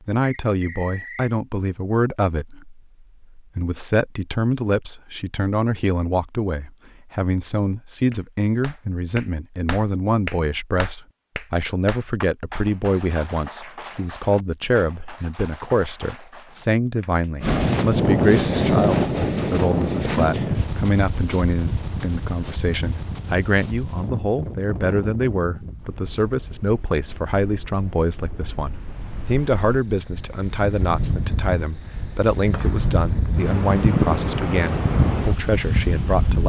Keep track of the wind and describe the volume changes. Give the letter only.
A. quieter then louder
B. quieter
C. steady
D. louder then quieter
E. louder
A.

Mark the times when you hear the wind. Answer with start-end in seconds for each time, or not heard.
17.4-36.4.